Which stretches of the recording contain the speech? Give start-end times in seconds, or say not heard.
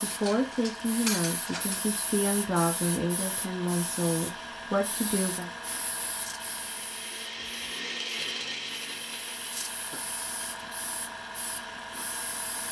0.0-5.5.